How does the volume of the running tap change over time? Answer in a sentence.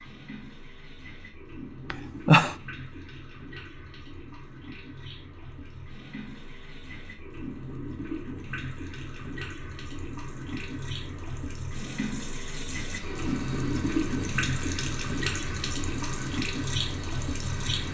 The loudness of the running tap goes up.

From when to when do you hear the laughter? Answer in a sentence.
You can hear the laughter from 1.9 to 2.5 s.